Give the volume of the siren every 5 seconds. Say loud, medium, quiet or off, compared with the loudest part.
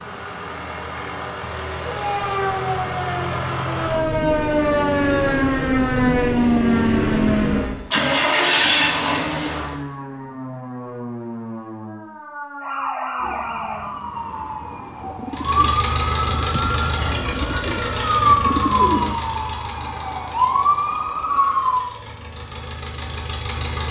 loud, loud, medium, loud, loud.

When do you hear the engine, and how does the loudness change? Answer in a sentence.
You can hear the engine from 0.0 to 9.8 s, getting louder; and from 15.3 to 23.8 s, getting quieter then louder.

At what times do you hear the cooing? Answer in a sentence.
The cooing can be heard from 13.2 to 19.2 s.